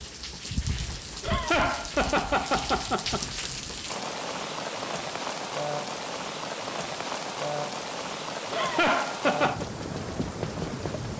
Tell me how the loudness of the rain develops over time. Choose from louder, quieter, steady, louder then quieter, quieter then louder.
steady.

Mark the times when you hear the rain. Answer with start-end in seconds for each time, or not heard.
0.0-11.1.